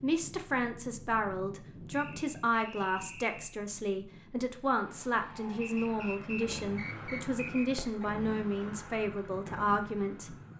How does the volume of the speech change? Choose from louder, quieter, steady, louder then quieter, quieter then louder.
steady.